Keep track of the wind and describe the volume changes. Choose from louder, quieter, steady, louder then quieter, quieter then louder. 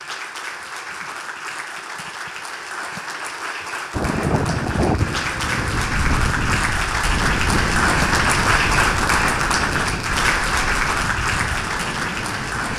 quieter.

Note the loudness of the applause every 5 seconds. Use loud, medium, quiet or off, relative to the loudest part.
medium, loud, loud.